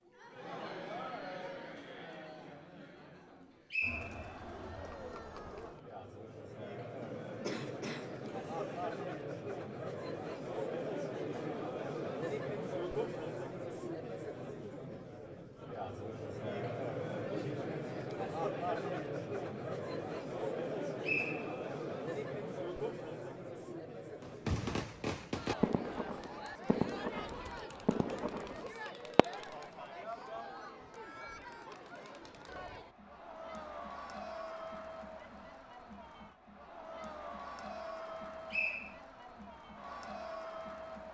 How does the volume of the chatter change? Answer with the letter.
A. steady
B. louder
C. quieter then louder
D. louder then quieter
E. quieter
D.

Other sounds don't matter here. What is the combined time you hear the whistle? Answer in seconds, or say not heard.
2 s.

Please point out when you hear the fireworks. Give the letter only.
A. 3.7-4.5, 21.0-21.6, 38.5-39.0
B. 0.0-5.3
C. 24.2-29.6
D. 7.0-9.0
C.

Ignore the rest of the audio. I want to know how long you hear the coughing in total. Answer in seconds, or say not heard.
2 s.